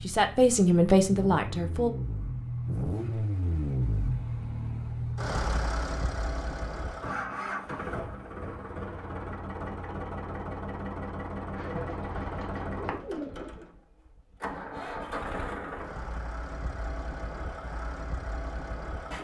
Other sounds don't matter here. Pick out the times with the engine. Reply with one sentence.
You can hear the engine from 0.0 to 19.1 s.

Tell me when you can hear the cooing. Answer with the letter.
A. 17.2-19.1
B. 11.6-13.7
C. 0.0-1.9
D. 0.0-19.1
B.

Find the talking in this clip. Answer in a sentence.
You can hear the talking from 0.0 to 1.9 s.